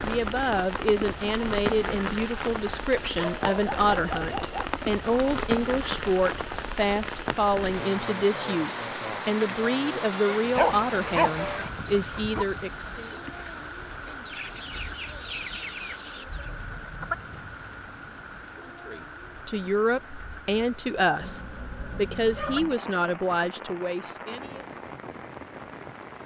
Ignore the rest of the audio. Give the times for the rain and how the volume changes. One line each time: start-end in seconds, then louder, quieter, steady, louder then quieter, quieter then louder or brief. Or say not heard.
0.0-26.2 quieter.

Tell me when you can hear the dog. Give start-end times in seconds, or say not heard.
3.1-4.7, 10.4-12.4, 21.2-22.8.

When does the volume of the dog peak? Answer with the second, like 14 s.
11 s.